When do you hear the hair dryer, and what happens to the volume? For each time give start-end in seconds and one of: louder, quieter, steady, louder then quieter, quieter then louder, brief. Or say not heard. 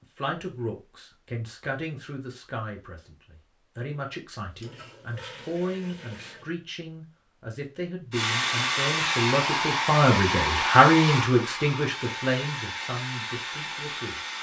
8.1-14.3 quieter.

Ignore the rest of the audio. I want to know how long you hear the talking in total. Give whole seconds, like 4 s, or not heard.
14 s.